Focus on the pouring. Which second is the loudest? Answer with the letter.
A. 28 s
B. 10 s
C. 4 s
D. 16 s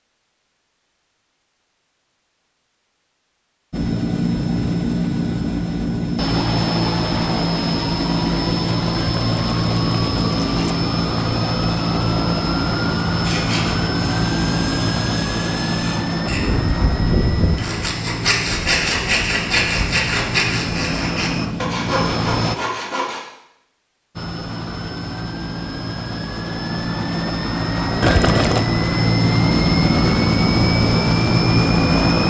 A.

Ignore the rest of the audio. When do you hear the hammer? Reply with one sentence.
You can't hear the hammer here.